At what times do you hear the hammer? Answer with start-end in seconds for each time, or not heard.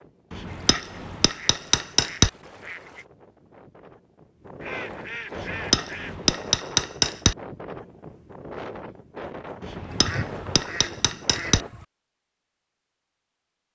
0.3-2.3, 5.3-7.3, 9.6-11.7.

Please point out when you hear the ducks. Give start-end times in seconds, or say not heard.
0.5-3.0, 4.6-6.2, 9.9-11.8.